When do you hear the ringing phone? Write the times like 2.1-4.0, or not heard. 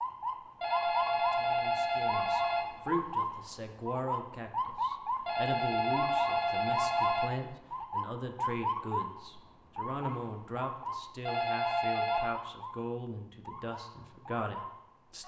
0.6-2.6, 5.2-7.2, 11.2-12.3.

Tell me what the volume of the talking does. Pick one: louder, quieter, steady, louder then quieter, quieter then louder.
steady.